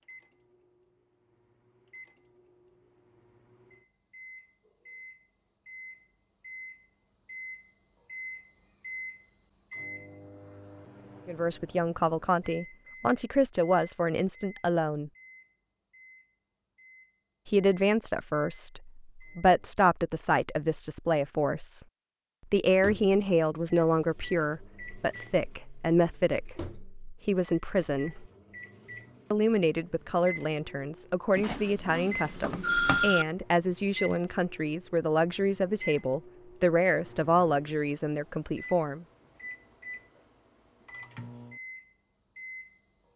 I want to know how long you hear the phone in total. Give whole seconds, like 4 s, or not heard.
2 s.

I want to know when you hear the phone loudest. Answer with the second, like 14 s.
33 s.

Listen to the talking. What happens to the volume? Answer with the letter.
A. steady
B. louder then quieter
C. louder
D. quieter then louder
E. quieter
A.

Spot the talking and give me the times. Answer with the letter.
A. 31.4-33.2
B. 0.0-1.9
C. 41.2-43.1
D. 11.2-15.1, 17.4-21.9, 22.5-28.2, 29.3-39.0
D.